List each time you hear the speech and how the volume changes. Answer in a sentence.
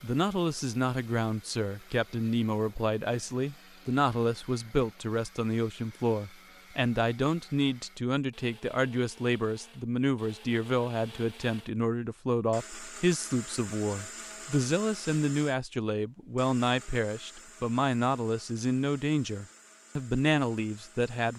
You can hear the speech from 0.0 to 21.3 s, at a steady volume.